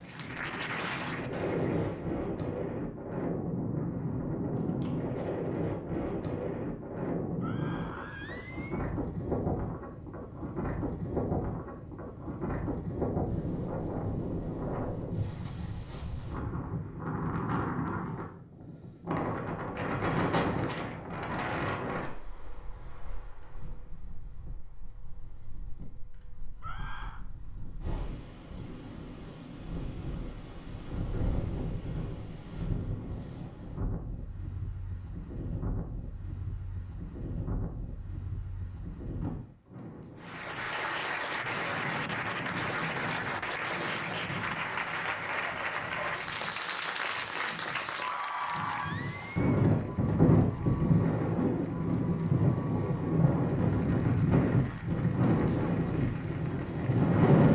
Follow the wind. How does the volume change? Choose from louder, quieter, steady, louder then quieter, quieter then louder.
quieter then louder.